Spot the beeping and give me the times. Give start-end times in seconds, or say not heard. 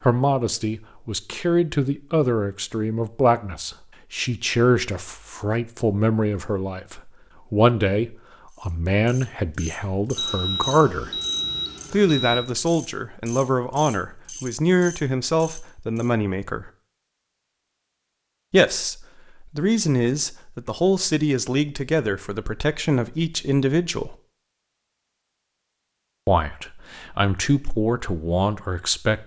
10.2-12.5.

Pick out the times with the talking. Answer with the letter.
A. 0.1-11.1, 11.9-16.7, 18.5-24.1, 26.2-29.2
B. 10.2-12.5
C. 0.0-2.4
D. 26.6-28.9
A.